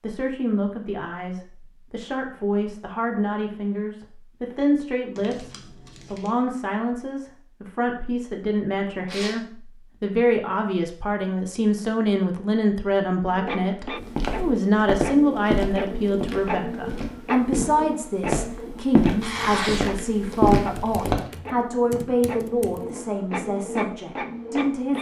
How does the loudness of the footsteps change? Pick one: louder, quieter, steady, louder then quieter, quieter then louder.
quieter then louder.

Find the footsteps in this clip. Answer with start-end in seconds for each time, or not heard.
14.0-21.1.